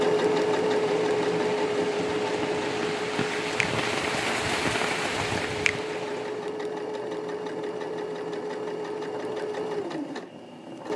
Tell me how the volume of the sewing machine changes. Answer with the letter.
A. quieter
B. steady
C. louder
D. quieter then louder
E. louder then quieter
A.